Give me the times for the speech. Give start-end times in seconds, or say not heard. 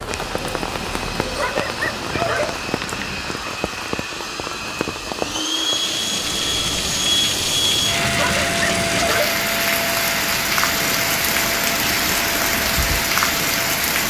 not heard.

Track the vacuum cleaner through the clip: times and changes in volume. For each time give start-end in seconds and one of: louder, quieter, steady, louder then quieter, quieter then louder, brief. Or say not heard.
0.0-13.8 louder then quieter.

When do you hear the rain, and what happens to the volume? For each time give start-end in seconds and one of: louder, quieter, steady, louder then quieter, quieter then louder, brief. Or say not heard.
0.0-14.0 louder.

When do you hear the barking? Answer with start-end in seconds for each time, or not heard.
1.4-2.5, 8.2-9.3.